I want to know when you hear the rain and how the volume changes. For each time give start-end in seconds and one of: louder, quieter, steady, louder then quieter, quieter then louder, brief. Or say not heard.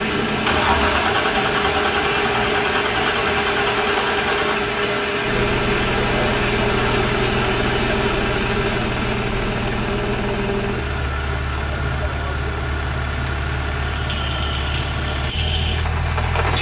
0.0-16.5 quieter.